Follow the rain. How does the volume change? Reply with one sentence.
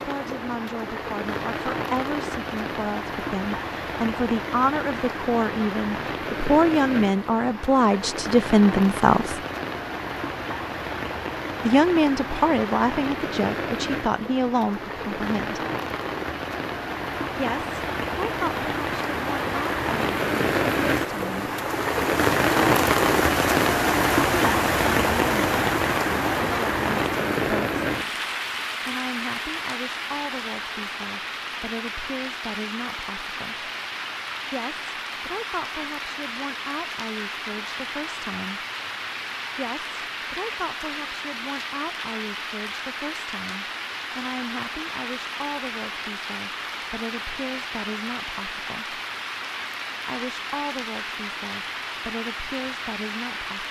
The volume of the rain goes up, then down.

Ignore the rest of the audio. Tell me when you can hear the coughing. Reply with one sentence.
The coughing can't be heard in this clip.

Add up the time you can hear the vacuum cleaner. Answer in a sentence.
You can't hear the vacuum cleaner here.